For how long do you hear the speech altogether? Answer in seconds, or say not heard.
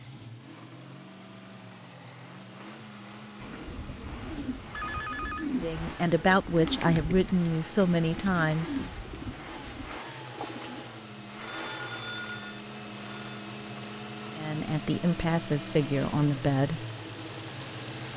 6 s.